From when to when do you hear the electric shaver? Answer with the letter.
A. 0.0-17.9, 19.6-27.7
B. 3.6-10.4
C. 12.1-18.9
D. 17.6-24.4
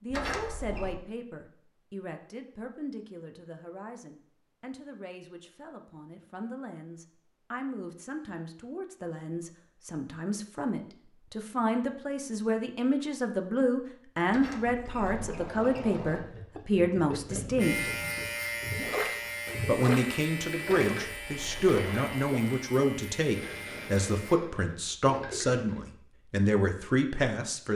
D.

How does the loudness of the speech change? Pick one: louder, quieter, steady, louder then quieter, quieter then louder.
louder.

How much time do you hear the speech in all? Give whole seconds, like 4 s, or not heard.
26 s.